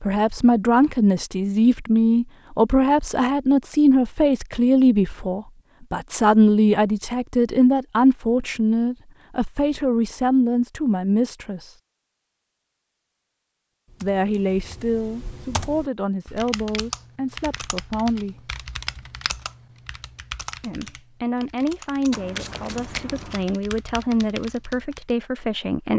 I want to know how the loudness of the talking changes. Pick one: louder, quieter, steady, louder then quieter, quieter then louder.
quieter.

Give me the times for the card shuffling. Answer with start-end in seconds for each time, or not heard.
22.1-23.5.